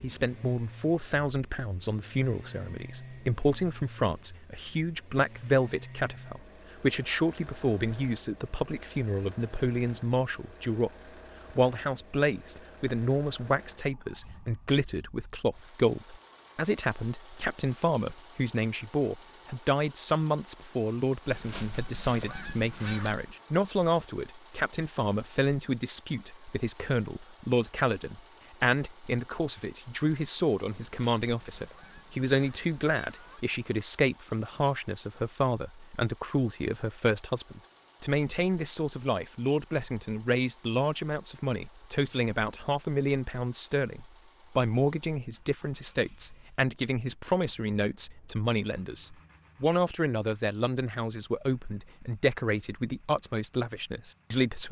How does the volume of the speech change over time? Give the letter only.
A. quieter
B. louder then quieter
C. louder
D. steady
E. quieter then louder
D.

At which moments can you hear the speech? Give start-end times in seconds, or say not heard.
0.0-10.9, 11.5-54.6.